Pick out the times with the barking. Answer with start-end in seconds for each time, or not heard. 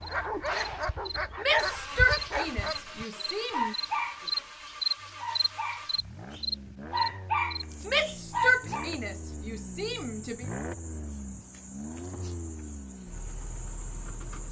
0.0-8.9.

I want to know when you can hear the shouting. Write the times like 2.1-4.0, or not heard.
1.4-3.8, 7.8-10.4.